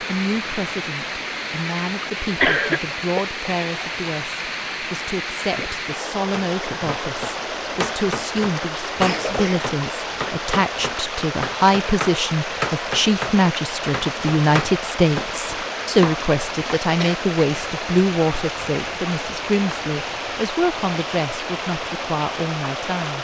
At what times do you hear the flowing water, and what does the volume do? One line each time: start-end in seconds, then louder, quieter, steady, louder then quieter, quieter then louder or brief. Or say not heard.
0.0-23.1 steady.